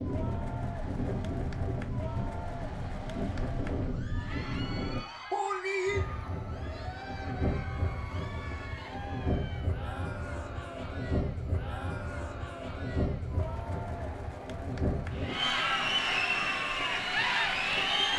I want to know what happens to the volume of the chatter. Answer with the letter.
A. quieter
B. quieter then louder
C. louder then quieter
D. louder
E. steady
D.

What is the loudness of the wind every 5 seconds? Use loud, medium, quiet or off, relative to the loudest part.
loud, loud, loud, medium.